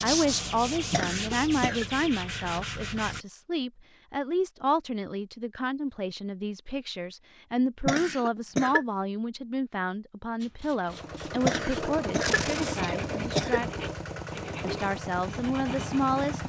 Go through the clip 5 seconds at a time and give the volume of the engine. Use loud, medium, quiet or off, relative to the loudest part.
off, off, loud, loud.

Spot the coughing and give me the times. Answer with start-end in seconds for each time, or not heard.
0.9-1.9, 7.8-8.8, 11.4-13.6.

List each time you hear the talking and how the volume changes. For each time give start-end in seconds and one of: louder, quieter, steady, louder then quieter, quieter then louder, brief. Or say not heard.
0.0-13.8 steady
14.6-16.4 brief.